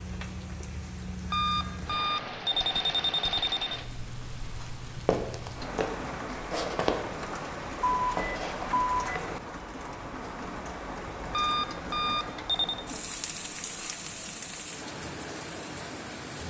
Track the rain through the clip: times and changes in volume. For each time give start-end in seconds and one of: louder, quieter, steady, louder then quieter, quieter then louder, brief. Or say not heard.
0.0-16.4 steady.